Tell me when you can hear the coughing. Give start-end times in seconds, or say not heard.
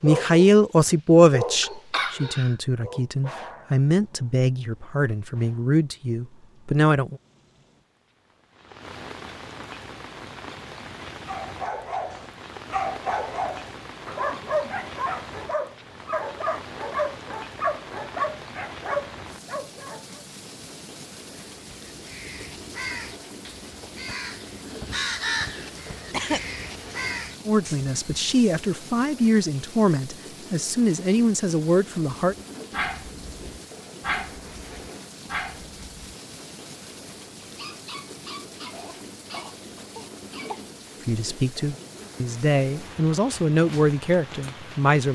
1.6-2.5, 26.1-26.6, 38.7-40.7.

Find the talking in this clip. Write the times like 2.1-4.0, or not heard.
0.0-7.2, 27.4-32.4, 41.0-45.0.